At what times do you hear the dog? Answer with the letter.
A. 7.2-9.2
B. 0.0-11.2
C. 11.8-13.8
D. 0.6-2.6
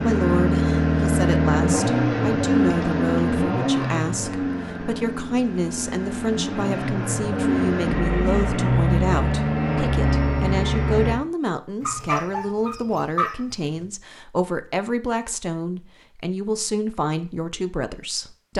C.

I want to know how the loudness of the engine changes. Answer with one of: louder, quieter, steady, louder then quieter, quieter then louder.
quieter then louder.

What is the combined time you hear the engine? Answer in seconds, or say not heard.
11 s.